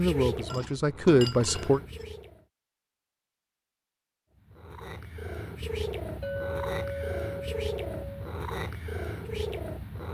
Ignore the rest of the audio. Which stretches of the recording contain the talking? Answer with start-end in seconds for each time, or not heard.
0.0-1.8.